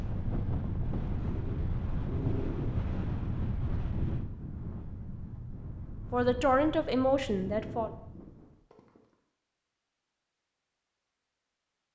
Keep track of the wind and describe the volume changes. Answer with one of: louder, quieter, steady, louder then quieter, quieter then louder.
quieter.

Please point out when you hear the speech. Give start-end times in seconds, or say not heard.
6.1-7.9.